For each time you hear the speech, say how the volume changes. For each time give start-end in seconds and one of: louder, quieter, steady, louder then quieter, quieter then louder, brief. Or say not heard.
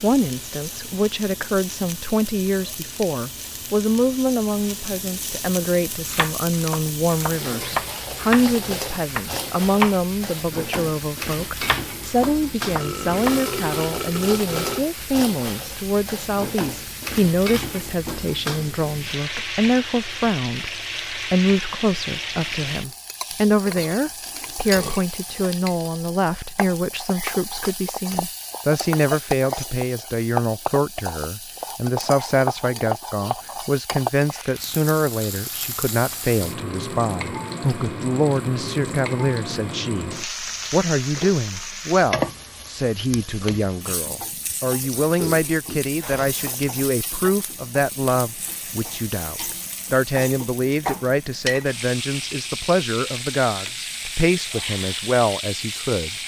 0.0-56.1 steady.